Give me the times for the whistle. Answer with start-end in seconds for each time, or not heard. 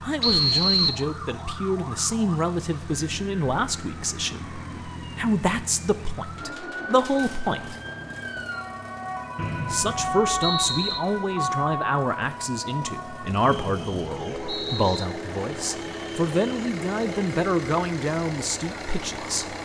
0.2-1.0, 9.3-11.0, 13.4-15.1.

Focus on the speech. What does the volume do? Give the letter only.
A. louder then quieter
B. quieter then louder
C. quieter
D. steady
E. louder
D.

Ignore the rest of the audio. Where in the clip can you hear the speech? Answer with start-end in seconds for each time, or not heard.
0.0-7.8, 9.7-19.6.